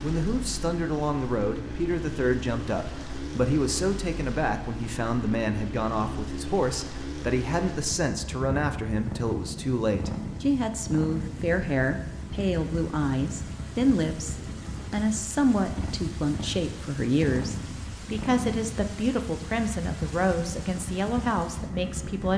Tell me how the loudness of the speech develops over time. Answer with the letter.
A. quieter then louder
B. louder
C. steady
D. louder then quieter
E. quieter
C.